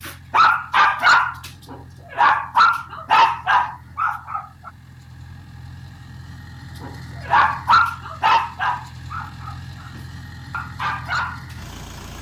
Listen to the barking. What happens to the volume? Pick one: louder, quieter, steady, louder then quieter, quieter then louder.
quieter.